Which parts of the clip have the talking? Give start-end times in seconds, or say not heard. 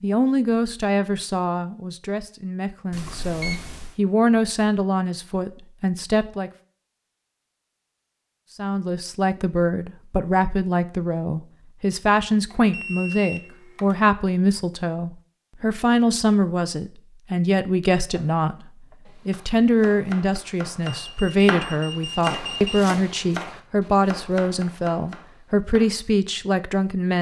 0.0-6.5, 8.6-27.1.